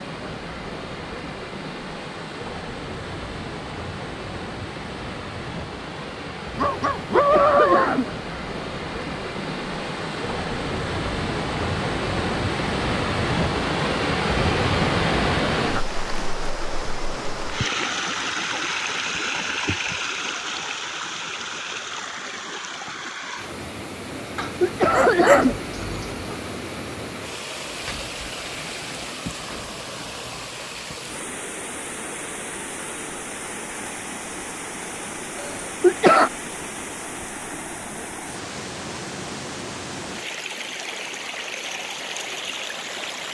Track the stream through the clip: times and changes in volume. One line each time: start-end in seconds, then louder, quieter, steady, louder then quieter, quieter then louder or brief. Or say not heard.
0.0-43.2 louder then quieter.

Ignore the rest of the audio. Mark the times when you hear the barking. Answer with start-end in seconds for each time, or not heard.
6.5-8.0, 24.4-26.2.